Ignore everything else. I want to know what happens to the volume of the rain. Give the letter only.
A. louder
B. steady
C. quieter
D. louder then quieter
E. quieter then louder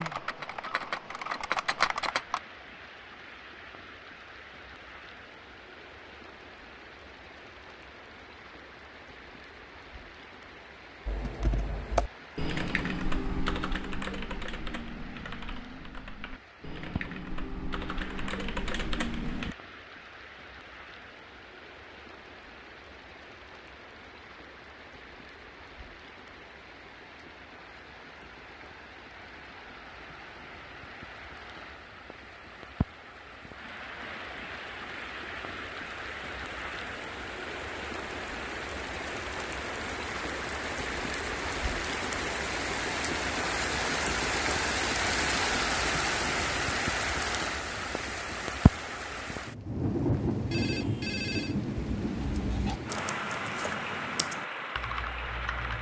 A.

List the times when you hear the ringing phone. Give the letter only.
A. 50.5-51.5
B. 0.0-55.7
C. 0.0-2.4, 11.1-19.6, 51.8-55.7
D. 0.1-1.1
A.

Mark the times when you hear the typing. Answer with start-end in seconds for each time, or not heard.
0.0-2.4, 11.1-19.6, 51.8-55.7.